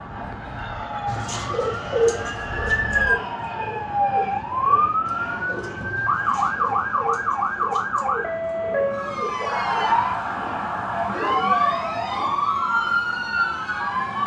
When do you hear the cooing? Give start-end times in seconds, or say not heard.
1.1-12.6.